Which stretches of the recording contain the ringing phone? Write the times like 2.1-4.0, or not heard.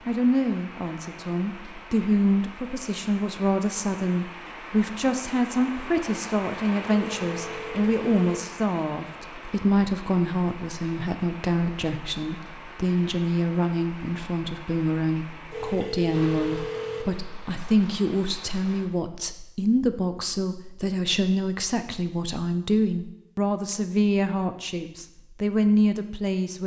6.8-8.4, 15.5-17.1.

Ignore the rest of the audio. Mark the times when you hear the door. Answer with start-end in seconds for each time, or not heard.
not heard.